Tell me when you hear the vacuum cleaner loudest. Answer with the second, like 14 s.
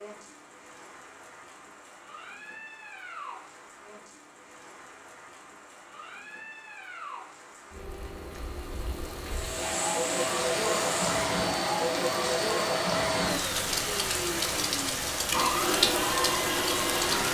16 s.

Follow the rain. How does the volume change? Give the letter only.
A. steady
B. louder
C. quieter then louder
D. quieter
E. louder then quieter
B.